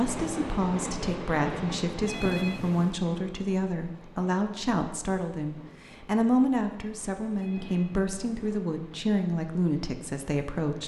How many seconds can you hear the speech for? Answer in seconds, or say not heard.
11 s.